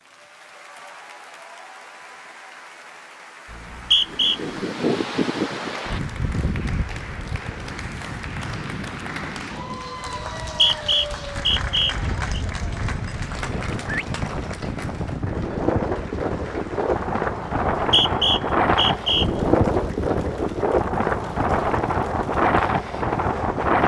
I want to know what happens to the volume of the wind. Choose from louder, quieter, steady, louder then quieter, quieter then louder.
quieter then louder.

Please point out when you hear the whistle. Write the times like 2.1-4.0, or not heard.
3.5-4.4, 10.4-12.4, 17.8-19.2.